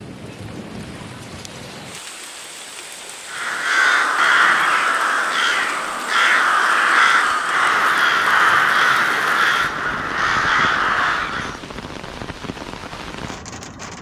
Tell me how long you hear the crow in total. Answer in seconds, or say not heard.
8 s.